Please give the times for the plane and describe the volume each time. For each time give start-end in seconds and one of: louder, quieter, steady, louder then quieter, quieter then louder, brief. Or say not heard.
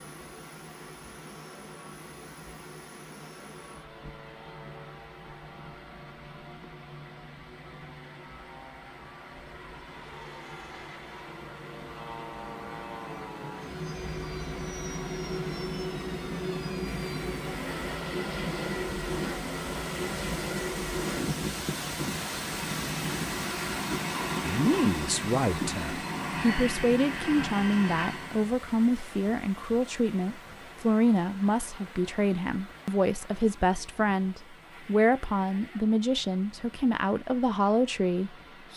0.0-28.5 louder.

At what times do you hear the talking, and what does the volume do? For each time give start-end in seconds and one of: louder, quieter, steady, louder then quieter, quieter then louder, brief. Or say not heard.
24.4-38.7 steady.